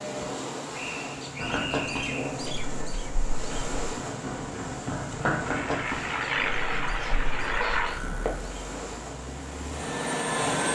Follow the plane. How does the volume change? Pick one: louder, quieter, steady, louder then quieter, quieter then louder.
quieter then louder.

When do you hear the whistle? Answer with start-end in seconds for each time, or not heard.
0.7-2.4.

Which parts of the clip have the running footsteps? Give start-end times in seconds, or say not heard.
1.4-8.3.